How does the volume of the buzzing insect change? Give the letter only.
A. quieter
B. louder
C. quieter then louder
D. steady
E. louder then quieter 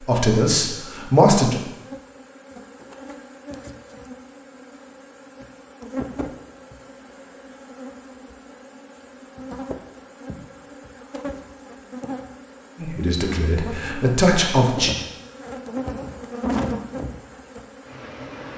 B.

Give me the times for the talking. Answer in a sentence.
The talking can be heard from 0.0 to 1.6 s and from 12.8 to 14.9 s.